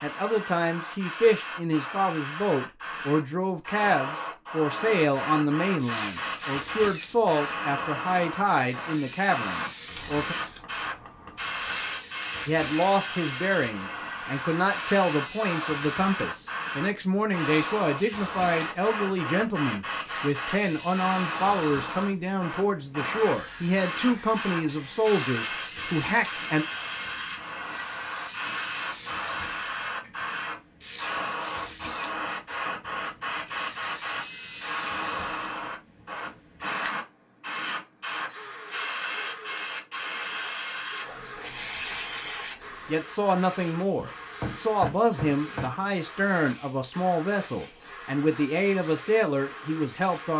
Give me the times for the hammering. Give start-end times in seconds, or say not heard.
9.9-11.9, 28.4-30.2, 44.0-45.9.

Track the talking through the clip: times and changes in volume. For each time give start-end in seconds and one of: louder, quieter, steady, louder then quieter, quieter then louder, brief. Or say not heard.
0.0-10.3 steady
12.4-26.6 steady
42.9-50.3 steady.